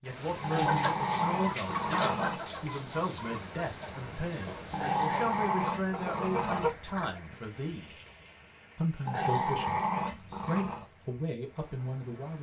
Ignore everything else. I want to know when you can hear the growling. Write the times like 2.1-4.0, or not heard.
0.4-2.5, 4.7-6.7, 9.1-10.8.